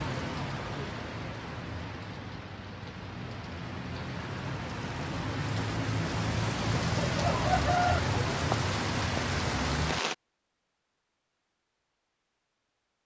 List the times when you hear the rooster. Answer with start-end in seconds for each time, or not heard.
6.8-8.0.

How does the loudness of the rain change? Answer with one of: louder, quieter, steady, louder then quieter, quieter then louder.
louder.